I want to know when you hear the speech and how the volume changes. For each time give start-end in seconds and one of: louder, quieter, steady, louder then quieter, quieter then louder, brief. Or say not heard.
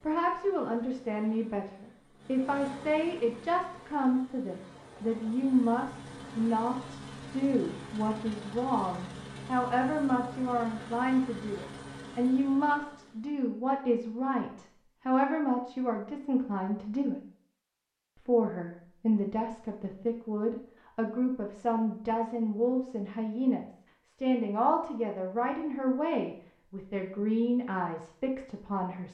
0.0-17.2 steady
18.2-29.1 steady.